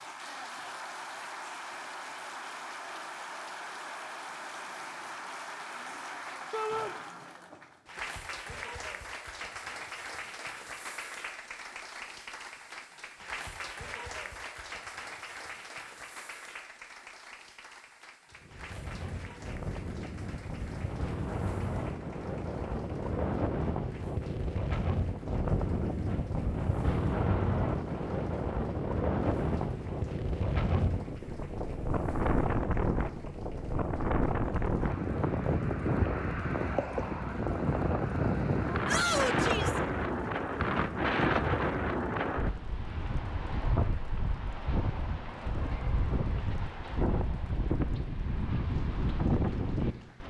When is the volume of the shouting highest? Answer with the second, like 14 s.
39 s.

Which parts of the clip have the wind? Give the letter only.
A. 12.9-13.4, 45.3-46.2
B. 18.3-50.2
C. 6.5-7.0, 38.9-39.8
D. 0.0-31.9
B.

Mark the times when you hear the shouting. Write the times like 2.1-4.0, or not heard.
6.5-7.0, 38.9-39.8.